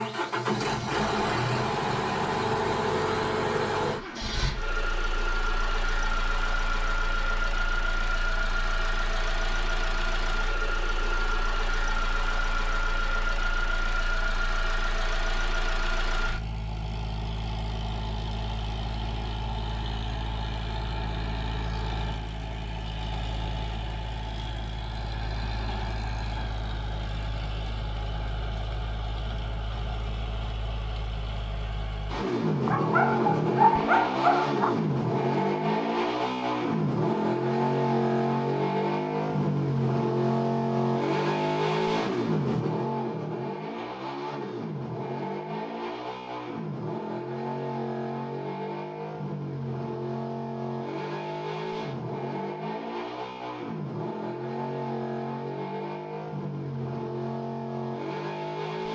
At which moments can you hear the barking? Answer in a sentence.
You can hear the barking from 32.6 to 34.8 s.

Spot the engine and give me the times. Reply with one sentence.
The engine can be heard from 0.0 to 58.8 s.